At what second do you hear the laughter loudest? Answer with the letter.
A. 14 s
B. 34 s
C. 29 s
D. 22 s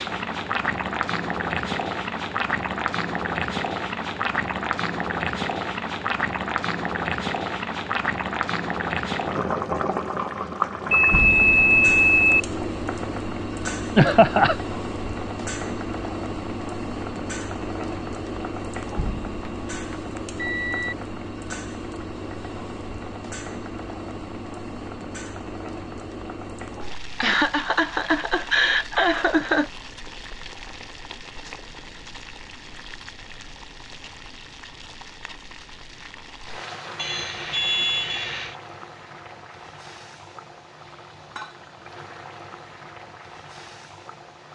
A.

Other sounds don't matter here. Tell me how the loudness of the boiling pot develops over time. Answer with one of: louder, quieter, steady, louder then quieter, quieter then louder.
quieter.